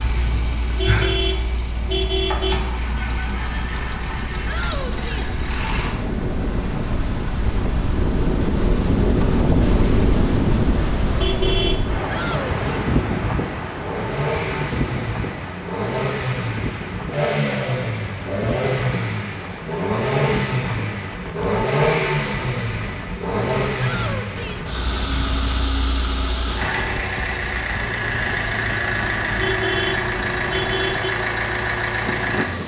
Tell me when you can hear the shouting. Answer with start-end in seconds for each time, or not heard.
4.5-5.3, 12.1-12.7, 23.8-24.7.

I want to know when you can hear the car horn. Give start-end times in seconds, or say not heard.
0.8-2.6, 11.2-11.9, 29.4-31.1.